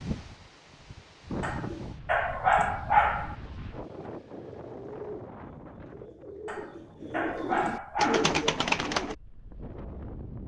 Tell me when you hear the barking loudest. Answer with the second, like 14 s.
3 s.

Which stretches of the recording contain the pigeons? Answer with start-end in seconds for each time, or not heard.
4.2-9.2.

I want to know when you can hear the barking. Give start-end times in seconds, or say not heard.
1.4-3.4, 6.5-8.4.